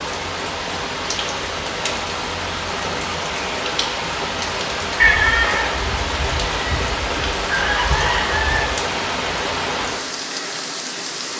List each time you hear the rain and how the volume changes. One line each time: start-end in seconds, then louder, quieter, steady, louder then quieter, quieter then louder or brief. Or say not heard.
0.0-11.3 steady.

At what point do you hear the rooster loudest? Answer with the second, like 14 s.
5 s.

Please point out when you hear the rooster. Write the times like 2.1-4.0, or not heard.
5.0-8.7.